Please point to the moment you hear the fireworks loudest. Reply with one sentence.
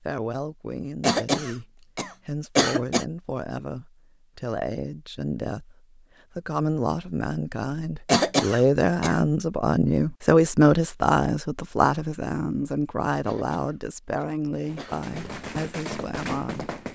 The volume of the fireworks peaks at 16 seconds.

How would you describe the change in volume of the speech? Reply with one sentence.
The loudness of the speech goes up, then down.